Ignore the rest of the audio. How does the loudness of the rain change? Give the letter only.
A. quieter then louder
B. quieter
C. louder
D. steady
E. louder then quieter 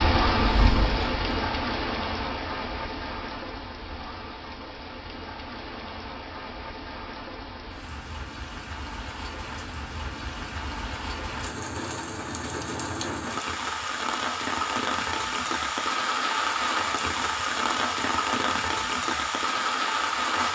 A.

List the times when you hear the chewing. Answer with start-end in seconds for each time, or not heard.
0.0-1.4.